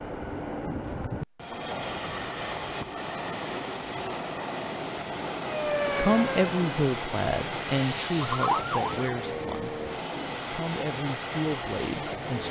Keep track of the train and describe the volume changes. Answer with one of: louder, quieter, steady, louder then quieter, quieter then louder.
steady.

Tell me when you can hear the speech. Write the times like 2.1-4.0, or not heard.
6.0-9.8, 10.5-12.4.